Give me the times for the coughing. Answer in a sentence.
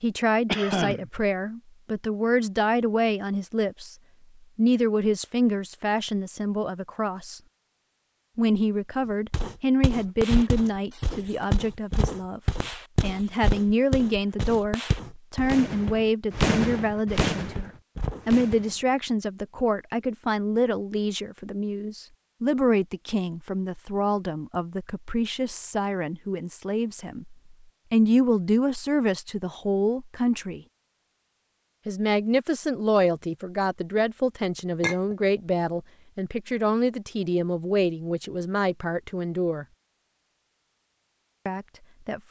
You can hear the coughing from 0.5 to 1.1 s.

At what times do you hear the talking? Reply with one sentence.
The talking can be heard from 0.0 to 4.0 s, from 4.5 to 7.4 s, from 8.3 to 30.6 s, from 31.9 to 39.6 s and from 41.5 to 42.2 s.